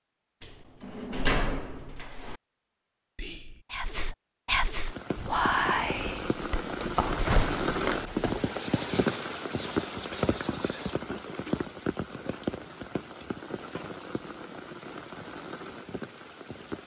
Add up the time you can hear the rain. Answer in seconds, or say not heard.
12 s.